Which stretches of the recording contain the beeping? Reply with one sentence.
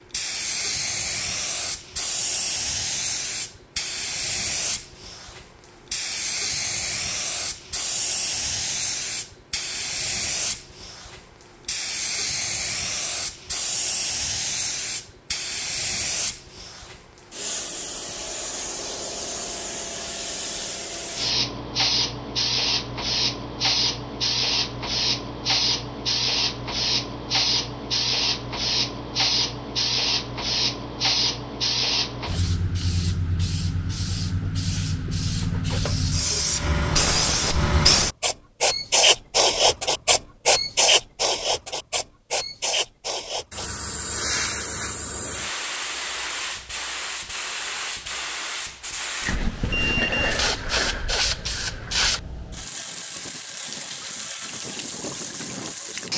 The beeping can be heard from 49.7 to 50.4 s.